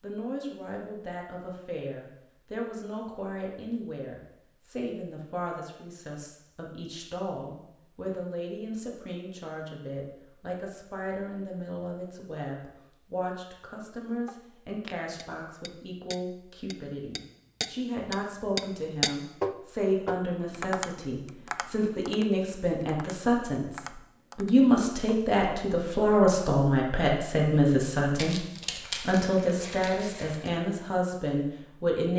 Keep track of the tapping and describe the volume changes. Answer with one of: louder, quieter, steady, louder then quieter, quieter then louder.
louder then quieter.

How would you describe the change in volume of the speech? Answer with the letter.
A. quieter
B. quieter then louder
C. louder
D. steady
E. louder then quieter
C.